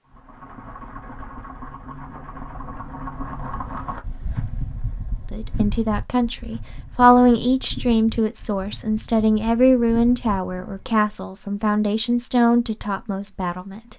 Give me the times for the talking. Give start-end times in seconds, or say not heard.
5.3-13.9.